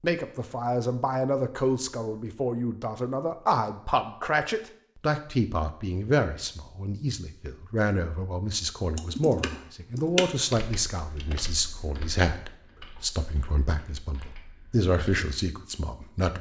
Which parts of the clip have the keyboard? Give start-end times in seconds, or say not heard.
8.9-14.9.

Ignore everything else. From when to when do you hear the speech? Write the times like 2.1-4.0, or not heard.
0.0-16.3.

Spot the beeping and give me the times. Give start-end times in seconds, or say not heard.
not heard.